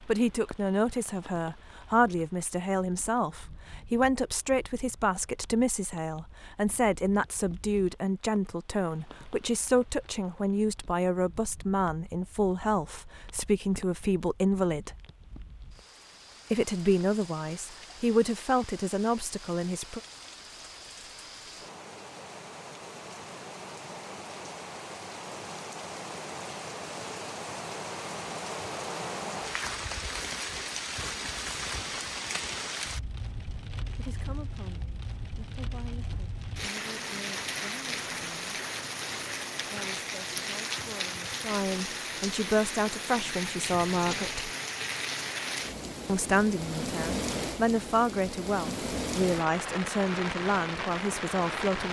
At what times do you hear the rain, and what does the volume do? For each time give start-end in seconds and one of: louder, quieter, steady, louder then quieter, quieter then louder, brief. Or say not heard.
0.0-51.8 louder.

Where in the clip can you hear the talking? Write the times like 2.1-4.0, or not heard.
0.1-14.9, 16.5-20.0, 33.9-38.4, 39.6-44.5, 46.0-51.8.